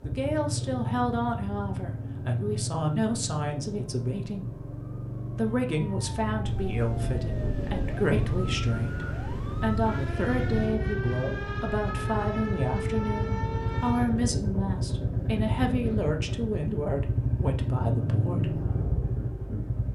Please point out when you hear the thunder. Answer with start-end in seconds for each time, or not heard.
6.5-10.7.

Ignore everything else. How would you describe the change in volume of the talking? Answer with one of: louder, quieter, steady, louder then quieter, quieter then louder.
steady.